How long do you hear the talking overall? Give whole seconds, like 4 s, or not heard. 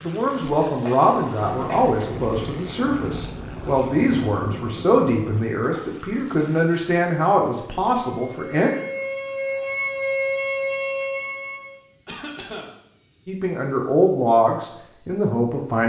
11 s.